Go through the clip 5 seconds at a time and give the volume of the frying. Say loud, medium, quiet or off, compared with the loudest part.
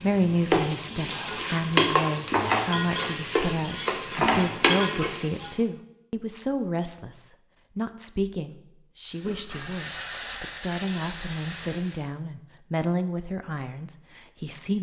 loud, medium, medium.